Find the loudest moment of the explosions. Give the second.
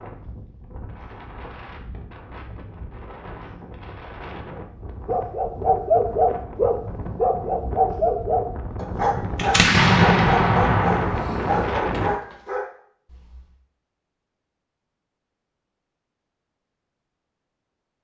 10 s.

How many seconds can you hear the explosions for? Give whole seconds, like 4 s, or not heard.
3 s.